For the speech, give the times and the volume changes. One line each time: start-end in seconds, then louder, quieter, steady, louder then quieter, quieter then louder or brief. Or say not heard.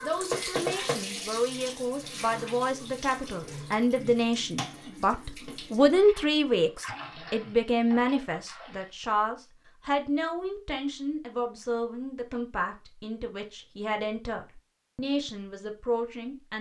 0.0-16.5 louder then quieter.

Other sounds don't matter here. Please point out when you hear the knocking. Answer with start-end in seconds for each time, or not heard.
0.3-1.1.